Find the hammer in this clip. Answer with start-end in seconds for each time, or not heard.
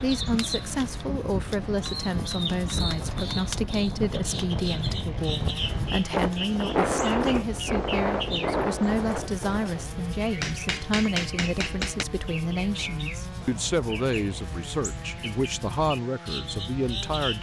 10.4-12.1.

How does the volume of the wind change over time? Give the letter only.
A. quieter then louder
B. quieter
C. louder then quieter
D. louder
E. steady
D.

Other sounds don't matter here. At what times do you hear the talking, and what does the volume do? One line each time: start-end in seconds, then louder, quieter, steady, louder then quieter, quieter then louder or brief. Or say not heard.
0.0-17.3 steady.